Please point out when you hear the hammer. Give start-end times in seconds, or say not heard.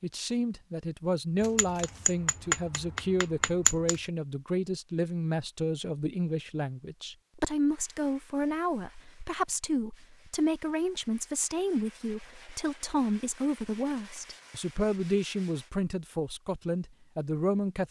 1.4-4.0.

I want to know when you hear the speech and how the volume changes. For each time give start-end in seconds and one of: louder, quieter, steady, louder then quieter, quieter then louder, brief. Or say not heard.
0.0-17.8 steady.